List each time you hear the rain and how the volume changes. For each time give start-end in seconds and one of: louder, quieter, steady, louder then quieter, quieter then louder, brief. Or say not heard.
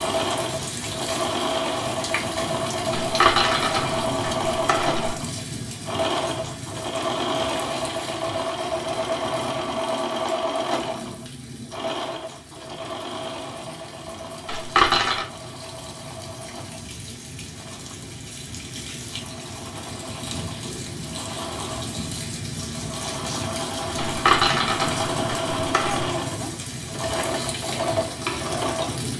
0.0-29.1 quieter then louder.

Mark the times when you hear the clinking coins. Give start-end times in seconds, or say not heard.
2.9-5.2, 14.4-15.2, 23.9-26.1.